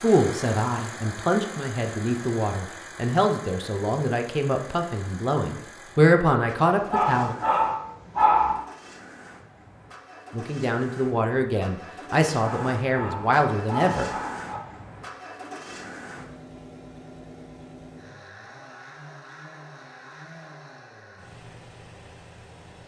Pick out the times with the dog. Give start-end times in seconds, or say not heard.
6.8-8.6, 12.4-14.6.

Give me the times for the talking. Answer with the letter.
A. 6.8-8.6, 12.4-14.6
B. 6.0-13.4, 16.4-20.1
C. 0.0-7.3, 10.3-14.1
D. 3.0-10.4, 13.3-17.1
C.